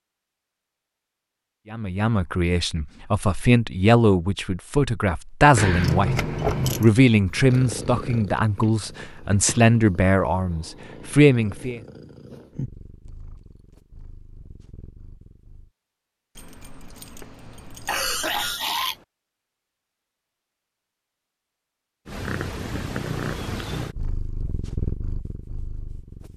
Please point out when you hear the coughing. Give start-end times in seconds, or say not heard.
17.9-19.0.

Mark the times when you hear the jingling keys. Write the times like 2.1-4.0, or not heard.
5.5-6.9, 16.4-18.6.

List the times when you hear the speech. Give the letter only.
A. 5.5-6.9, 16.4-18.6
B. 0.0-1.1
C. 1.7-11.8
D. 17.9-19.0
C.